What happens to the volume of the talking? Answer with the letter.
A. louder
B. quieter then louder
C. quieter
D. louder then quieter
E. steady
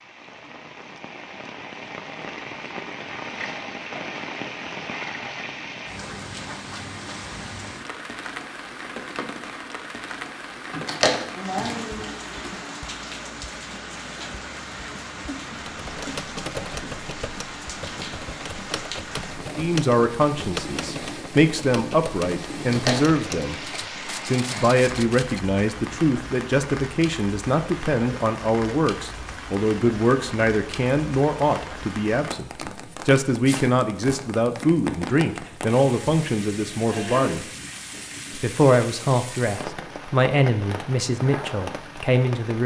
E.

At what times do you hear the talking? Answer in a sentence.
You can hear the talking from 19.6 to 23.6 s, from 24.2 to 37.5 s and from 38.4 to 42.6 s.